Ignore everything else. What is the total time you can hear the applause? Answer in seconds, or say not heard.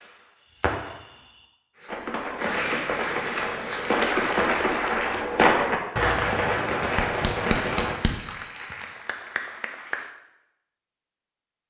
7 s.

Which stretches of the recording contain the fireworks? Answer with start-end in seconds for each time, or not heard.
0.0-8.0.